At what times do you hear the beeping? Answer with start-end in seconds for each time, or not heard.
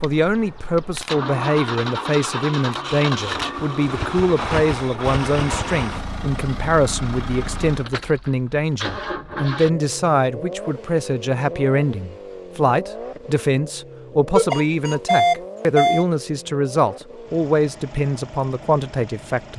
14.3-16.1.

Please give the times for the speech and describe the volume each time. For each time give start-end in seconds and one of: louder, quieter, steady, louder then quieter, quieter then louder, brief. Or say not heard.
0.0-19.5 steady.